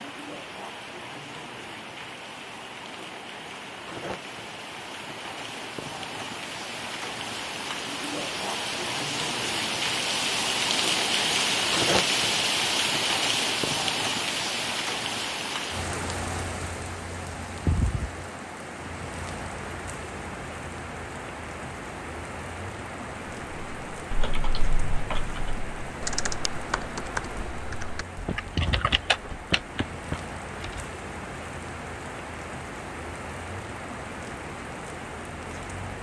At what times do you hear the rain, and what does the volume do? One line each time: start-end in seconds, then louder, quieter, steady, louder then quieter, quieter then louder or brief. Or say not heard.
0.0-35.9 louder then quieter.